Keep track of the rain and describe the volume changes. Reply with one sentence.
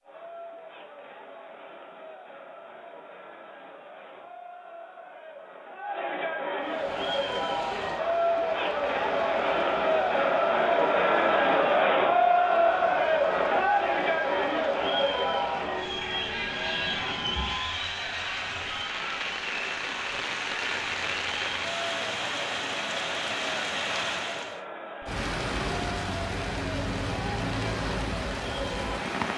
The loudness of the rain goes up.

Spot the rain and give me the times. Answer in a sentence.
You can hear the rain from 6.6 to 29.3 s.